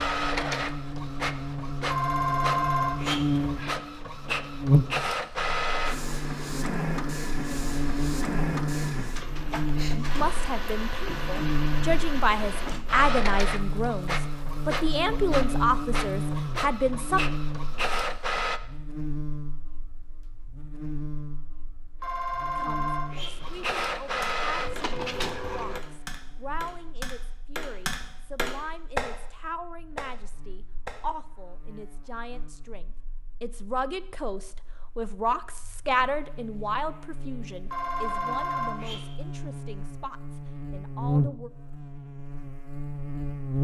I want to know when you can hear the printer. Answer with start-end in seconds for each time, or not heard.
0.0-18.6, 23.4-25.8.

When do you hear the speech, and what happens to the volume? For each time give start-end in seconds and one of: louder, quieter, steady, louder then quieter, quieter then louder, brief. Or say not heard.
9.9-17.2 louder
22.6-41.5 louder then quieter.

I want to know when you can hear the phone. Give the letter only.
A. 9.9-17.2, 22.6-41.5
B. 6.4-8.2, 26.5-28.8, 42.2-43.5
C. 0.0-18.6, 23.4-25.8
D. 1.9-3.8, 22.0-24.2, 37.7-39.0
D.